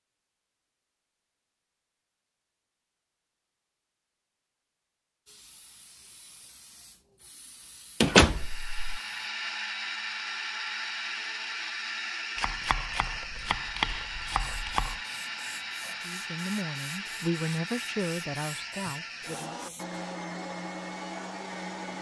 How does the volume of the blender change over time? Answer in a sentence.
The loudness of the blender stays about the same.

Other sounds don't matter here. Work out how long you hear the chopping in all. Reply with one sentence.
The chopping can be heard for 3 seconds in total.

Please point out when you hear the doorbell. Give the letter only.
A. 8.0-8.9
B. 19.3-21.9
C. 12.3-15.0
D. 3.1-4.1
A.